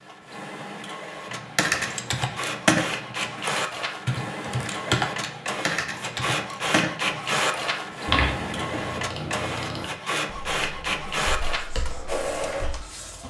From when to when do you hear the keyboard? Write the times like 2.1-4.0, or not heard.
1.3-12.8.